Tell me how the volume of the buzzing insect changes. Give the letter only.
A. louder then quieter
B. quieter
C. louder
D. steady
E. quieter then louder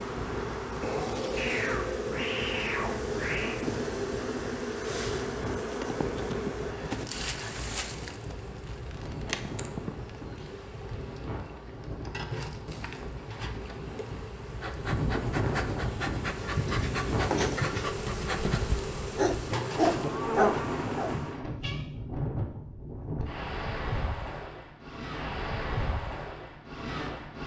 E.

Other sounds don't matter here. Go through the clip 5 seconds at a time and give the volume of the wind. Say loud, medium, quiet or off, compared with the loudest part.
medium, medium, medium, loud, loud, loud.